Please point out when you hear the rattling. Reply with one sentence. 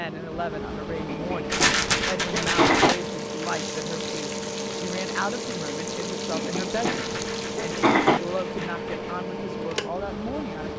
The rattling can be heard from 1.5 to 3.1 s and from 6.7 to 9.2 s.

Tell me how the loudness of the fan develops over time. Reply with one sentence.
The volume of the fan stays about the same.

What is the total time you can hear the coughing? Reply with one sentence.
The coughing can be heard for 4 seconds in total.